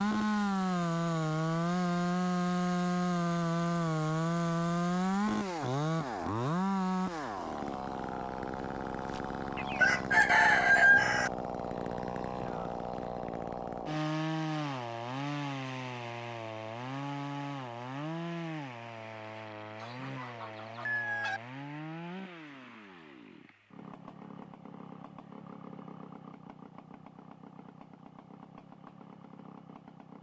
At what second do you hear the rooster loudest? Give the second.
11 s.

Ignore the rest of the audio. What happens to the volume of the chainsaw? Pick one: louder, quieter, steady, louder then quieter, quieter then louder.
quieter.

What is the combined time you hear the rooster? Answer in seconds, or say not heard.
3 s.